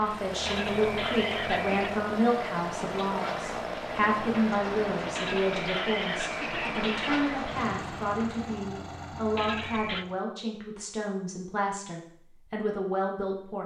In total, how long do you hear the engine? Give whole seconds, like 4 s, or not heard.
10 s.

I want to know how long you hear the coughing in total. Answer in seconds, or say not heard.
4 s.